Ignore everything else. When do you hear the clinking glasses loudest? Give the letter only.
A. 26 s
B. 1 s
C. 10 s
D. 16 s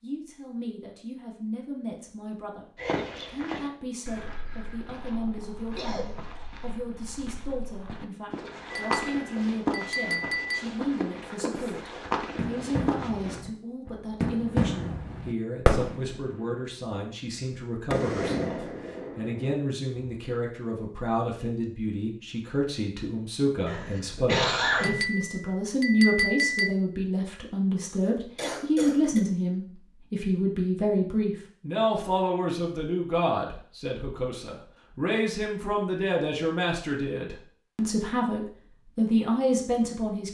A.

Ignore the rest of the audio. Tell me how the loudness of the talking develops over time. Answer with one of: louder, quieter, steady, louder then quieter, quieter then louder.
louder.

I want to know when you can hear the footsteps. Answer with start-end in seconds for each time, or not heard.
2.8-13.4.